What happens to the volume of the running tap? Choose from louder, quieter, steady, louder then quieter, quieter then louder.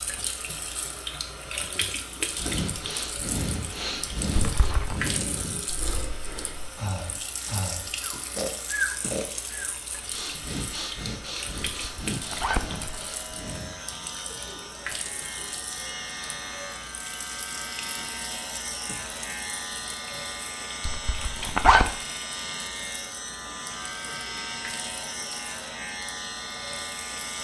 quieter.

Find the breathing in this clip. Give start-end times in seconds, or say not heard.
2.3-13.8.